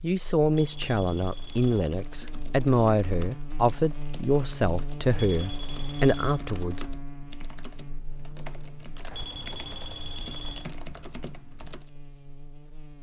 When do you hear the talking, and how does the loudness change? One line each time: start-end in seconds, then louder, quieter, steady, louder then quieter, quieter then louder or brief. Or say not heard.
0.0-6.8 steady.